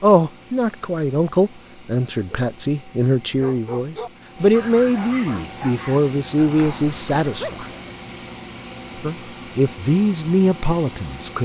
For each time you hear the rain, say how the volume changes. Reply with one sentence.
You can't hear the rain here.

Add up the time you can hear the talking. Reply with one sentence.
You can hear the talking for 10 seconds altogether.